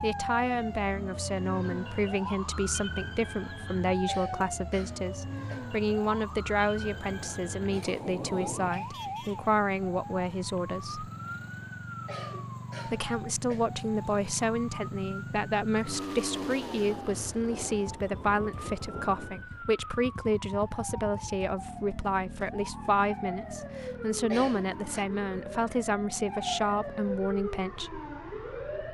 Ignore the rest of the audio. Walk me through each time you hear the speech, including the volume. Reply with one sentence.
The speech can be heard from 0.0 to 11.1 s, at a steady volume; and from 12.8 to 28.0 s, at a steady volume.